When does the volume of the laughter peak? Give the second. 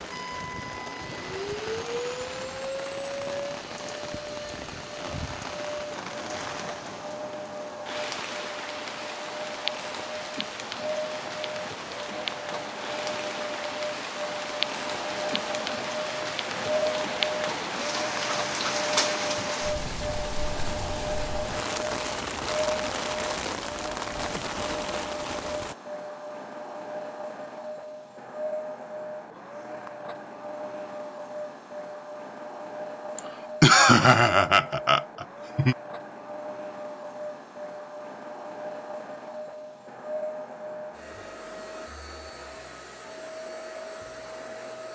34 s.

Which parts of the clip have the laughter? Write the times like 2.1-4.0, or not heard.
33.1-35.8.